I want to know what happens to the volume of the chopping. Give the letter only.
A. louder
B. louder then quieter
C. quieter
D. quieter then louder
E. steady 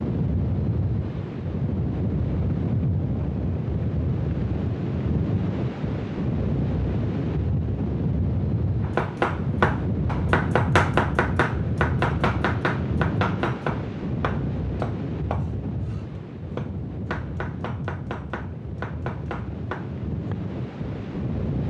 C.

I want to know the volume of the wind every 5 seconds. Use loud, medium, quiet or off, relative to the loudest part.
loud, loud, loud, medium, loud.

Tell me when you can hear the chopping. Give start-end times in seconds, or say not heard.
8.8-20.4.